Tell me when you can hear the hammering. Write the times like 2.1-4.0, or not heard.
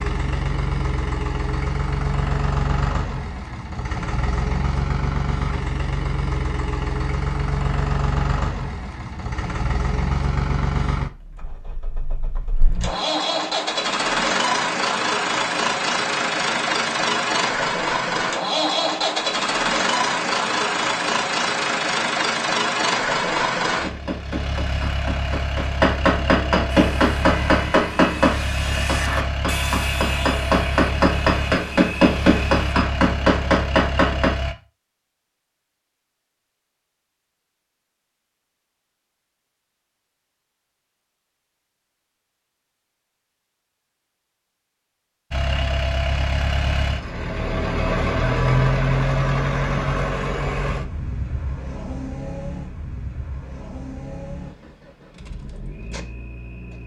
23.8-34.4.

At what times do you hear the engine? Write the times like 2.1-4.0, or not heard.
0.0-34.5, 45.3-56.8.